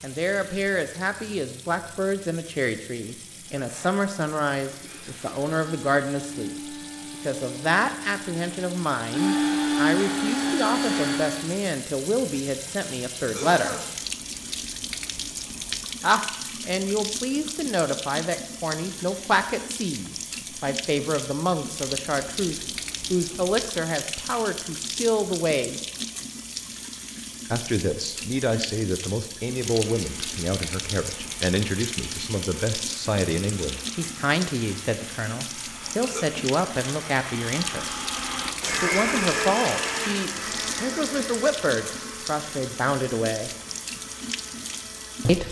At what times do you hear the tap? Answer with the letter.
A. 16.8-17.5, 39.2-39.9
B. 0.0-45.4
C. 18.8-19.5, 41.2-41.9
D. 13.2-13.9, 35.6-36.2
B.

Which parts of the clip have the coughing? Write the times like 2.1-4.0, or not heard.
13.2-13.9, 35.6-36.2.